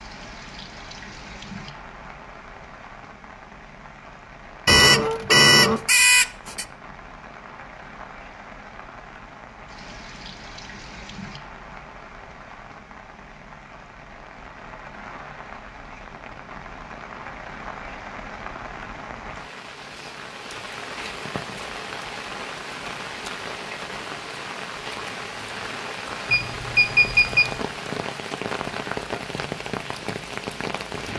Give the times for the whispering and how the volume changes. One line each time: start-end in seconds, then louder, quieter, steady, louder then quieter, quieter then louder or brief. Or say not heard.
not heard.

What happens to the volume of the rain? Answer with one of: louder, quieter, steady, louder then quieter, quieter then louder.
louder.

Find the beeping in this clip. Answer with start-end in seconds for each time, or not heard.
4.7-6.7, 26.3-27.6.